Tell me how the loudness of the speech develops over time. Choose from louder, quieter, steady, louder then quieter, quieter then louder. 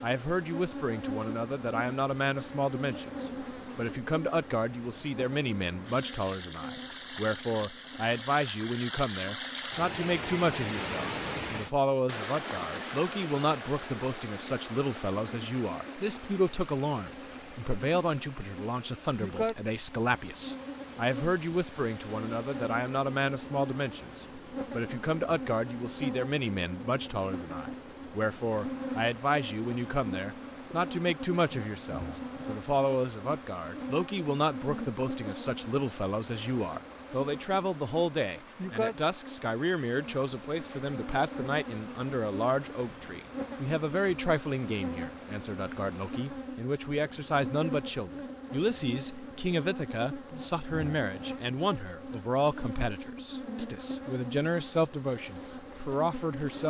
steady.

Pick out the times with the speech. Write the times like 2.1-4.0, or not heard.
0.0-56.6.